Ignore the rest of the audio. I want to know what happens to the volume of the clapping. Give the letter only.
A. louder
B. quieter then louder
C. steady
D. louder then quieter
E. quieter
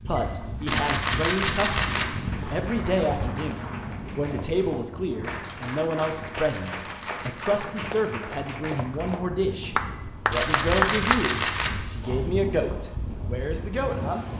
A.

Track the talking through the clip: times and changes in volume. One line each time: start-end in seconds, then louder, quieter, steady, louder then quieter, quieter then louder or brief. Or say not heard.
0.0-14.3 steady.